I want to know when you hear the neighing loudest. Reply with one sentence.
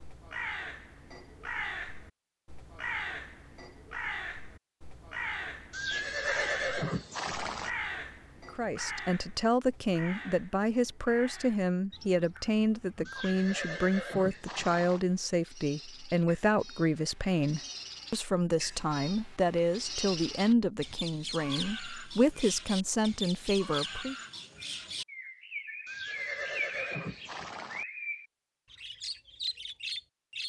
The volume of the neighing peaks at 6 seconds.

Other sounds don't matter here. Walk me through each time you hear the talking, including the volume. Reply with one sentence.
The talking can be heard from 8.4 to 24.1 s, at a steady volume.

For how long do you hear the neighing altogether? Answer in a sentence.
You can hear the neighing for 6 seconds altogether.